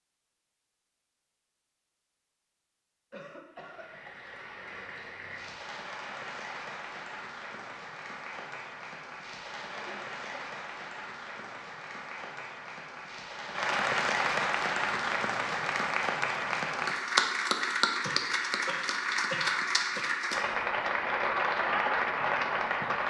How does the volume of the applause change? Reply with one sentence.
The volume of the applause goes up.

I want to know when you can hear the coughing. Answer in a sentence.
You can hear the coughing from 3.1 to 4.2 s, from 9.7 to 10.4 s and from 18.0 to 20.1 s.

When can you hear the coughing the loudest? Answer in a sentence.
The volume of the coughing peaks at 19 seconds.